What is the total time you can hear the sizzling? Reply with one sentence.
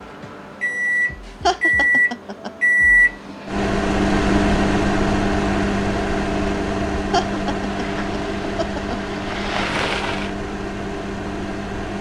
The sizzling can be heard for 3 seconds in total.